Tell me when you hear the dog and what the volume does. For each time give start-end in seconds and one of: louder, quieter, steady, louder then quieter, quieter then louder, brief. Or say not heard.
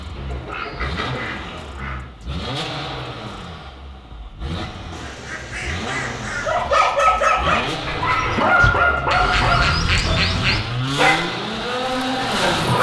6.4-12.7 quieter.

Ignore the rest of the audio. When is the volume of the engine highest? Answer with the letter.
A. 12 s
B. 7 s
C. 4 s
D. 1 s
A.